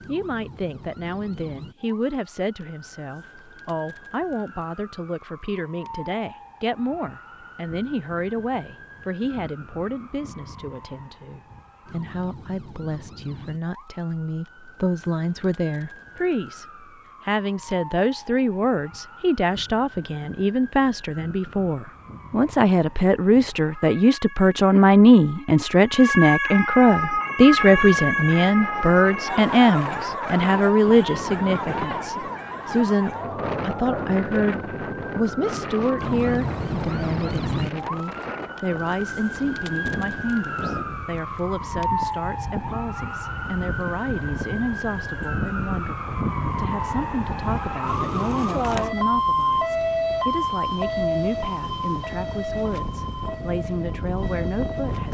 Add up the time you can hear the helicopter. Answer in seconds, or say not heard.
not heard.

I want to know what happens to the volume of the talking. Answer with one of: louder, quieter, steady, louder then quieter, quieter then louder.
louder then quieter.